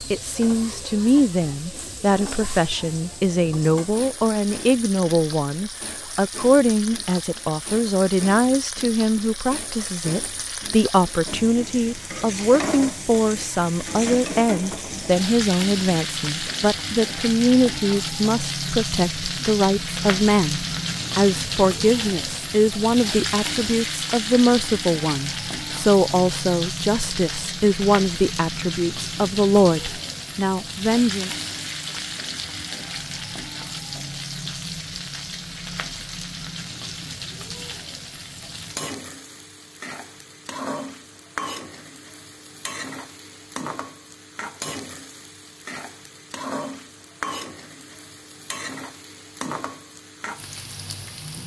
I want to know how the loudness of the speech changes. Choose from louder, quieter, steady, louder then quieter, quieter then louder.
steady.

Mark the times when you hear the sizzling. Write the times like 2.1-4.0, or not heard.
0.0-51.4.